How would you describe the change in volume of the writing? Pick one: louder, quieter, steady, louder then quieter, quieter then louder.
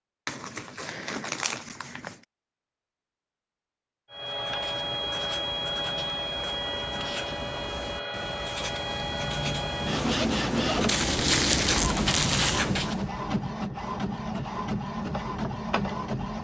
louder.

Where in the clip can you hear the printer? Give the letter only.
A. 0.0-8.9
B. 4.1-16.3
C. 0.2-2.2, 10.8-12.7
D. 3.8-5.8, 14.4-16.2
B.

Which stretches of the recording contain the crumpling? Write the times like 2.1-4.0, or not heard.
0.2-2.2, 10.8-12.7.